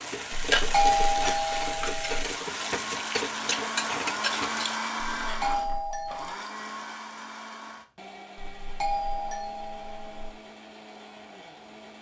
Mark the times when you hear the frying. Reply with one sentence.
The frying can be heard from 0.0 to 4.8 s.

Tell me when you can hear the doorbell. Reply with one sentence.
You can hear the doorbell from 0.3 to 2.2 s, from 5.0 to 6.3 s and from 8.3 to 10.3 s.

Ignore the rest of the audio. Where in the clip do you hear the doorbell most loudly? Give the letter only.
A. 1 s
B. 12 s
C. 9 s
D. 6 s
A.